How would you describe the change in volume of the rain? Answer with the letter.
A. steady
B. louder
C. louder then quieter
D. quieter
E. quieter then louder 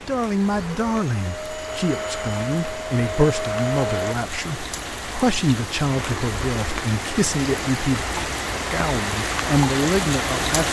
B.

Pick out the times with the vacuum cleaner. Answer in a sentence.
The vacuum cleaner can be heard from 0.5 to 4.2 s.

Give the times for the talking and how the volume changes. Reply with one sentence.
You can hear the talking from 0.1 to 10.6 s, at a steady volume.